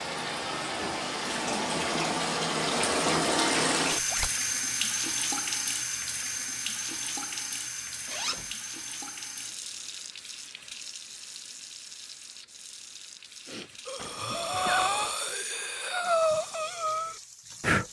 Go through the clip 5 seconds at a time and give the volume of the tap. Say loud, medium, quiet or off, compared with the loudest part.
loud, medium, quiet, quiet.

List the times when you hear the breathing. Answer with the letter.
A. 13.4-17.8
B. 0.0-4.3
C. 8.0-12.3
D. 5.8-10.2
A.